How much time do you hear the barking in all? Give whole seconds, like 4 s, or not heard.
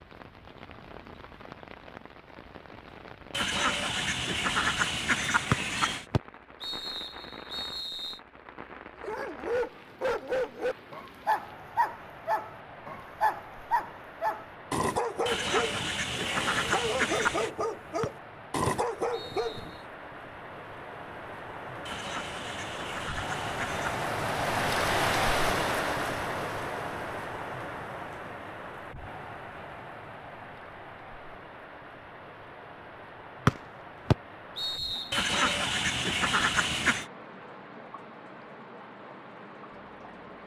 11 s.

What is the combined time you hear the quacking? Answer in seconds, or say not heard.
9 s.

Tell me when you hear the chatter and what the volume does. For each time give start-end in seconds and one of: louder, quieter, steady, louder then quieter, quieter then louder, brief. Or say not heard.
not heard.